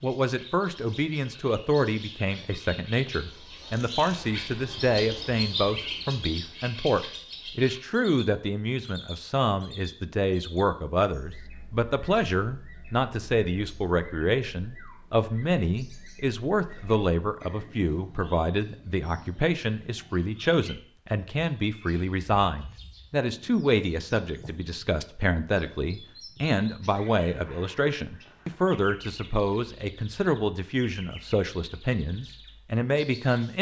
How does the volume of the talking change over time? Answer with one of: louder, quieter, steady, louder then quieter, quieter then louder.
steady.